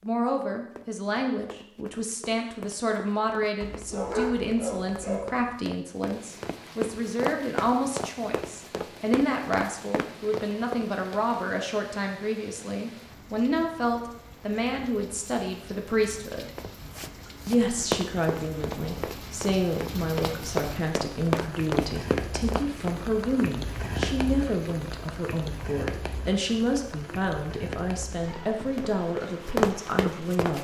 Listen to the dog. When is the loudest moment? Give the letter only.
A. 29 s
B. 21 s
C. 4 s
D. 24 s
C.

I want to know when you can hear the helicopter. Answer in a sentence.
The helicopter can't be heard in this clip.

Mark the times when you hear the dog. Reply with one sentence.
You can hear the dog from 3.6 to 5.5 s.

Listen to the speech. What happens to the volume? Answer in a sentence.
The loudness of the speech stays about the same.